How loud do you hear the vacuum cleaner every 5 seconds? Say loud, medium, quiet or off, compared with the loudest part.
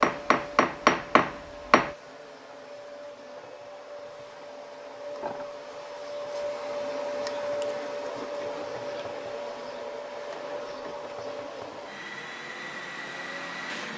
medium, loud, loud.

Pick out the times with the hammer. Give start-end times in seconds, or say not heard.
0.0-1.9.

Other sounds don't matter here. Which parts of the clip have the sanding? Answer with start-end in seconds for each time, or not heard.
not heard.